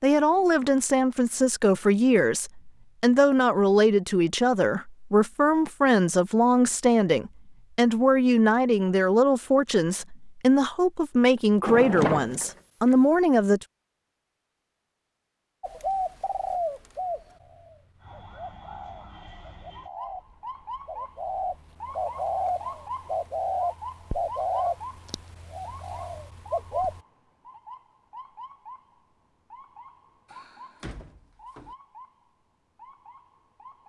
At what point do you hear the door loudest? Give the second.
12 s.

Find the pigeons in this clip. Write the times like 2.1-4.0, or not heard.
15.6-27.0.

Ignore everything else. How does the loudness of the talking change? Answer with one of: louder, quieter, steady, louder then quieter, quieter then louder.
steady.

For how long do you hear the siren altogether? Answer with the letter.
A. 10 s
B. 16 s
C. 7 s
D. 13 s
B.